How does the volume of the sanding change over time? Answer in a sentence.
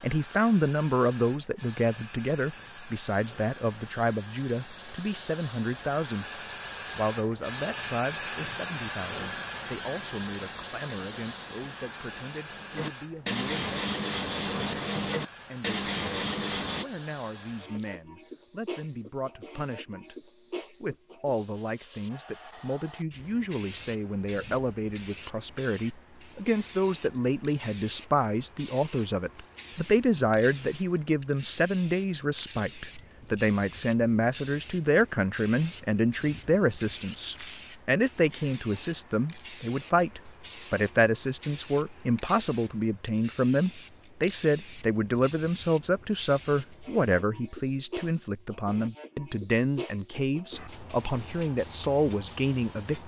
The loudness of the sanding goes up.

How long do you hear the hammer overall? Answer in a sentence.
The hammer can't be heard in this clip.